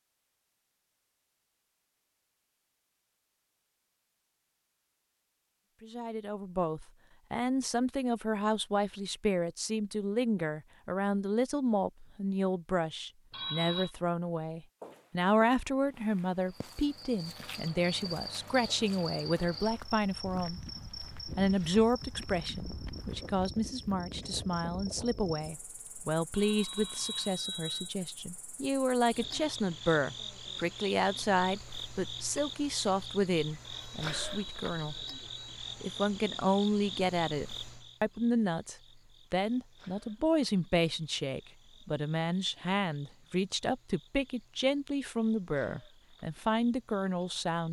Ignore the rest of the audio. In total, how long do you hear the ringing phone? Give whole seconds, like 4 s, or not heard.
4 s.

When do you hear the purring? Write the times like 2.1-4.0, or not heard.
not heard.